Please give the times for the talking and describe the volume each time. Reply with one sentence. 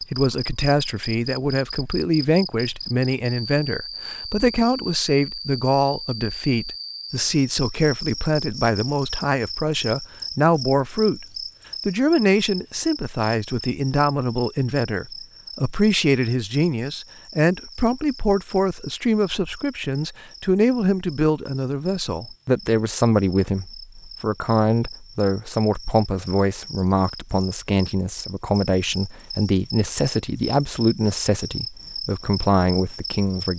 The talking can be heard from 0.0 to 11.2 s, at a steady volume; and from 11.8 to 33.5 s, at a steady volume.